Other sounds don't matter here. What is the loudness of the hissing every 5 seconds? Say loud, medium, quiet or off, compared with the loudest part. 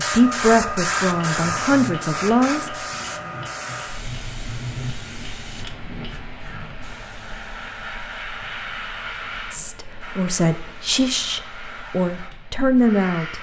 loud, medium, medium.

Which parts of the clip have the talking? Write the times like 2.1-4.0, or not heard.
0.0-2.9, 9.5-13.3.